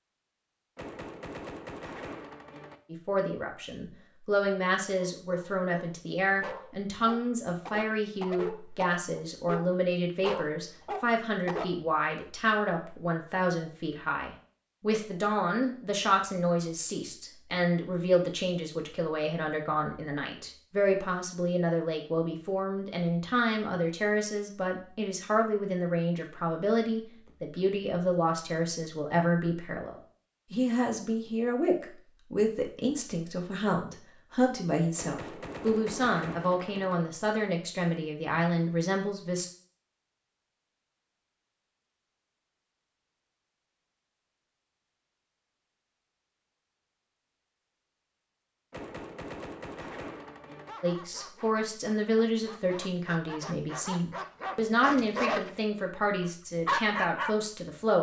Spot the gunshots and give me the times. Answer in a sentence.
The gunshots can be heard from 0.8 to 2.8 s, from 35.0 to 37.0 s and from 48.7 to 50.8 s.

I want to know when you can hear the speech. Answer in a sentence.
The speech can be heard from 2.9 to 39.5 s and from 50.8 to 57.9 s.